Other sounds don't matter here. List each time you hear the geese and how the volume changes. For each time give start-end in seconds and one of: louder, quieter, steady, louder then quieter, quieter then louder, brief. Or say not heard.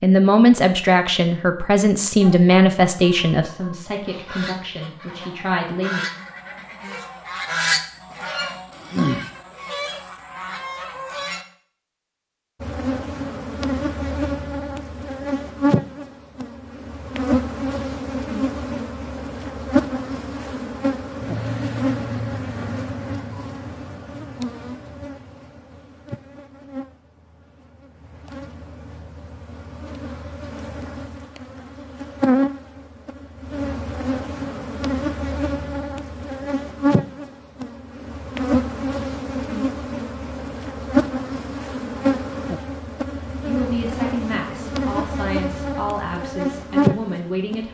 2.0-11.4 louder then quieter.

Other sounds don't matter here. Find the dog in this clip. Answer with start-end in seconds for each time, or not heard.
not heard.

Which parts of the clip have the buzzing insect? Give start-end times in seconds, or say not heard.
12.6-47.6.